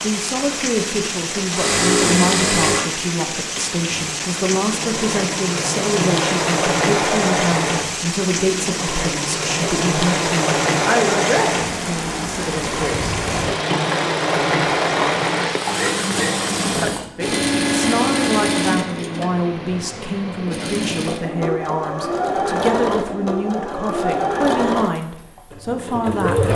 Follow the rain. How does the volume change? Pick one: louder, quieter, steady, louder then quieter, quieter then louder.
steady.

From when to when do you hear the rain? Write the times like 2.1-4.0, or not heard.
0.0-17.1.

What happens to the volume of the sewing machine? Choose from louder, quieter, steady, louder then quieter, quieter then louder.
steady.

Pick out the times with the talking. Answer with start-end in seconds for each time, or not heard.
0.0-13.1, 16.7-26.5.